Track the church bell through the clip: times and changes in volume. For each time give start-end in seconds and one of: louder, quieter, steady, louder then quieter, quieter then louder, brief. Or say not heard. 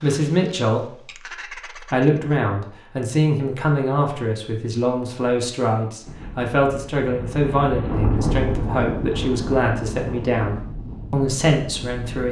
not heard.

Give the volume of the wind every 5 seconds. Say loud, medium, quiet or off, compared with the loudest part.
off, loud, medium.